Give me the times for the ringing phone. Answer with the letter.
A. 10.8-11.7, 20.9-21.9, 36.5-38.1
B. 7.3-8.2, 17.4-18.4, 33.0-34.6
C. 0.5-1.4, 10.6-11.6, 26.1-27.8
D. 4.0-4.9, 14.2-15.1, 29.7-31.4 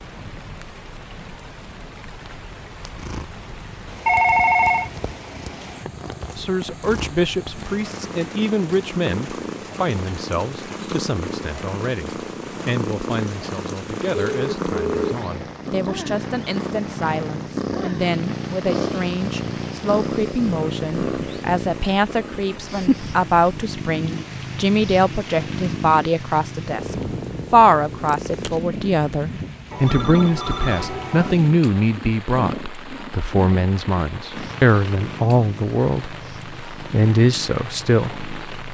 D.